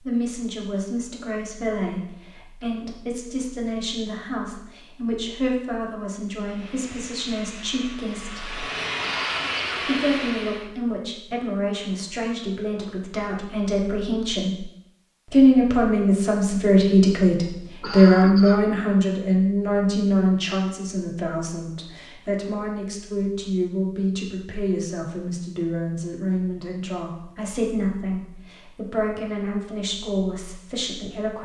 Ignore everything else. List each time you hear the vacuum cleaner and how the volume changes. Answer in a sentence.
The vacuum cleaner can be heard from 6.3 to 10.7 s, getting louder.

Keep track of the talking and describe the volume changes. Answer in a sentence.
The volume of the talking goes up, then down.